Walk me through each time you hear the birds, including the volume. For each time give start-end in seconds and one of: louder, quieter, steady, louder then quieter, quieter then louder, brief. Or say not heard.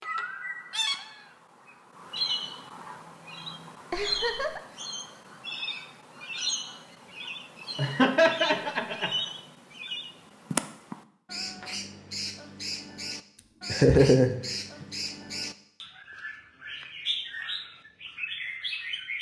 0.0-19.1 steady.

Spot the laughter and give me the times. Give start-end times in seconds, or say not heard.
3.9-4.6, 7.8-9.1, 13.3-14.8.